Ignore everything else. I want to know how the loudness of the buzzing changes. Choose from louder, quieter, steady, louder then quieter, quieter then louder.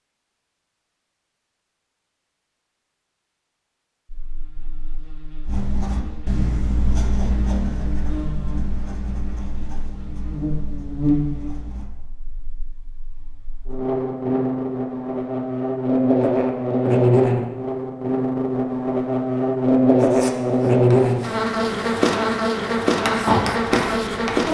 louder.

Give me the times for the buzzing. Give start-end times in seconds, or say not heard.
4.0-24.4.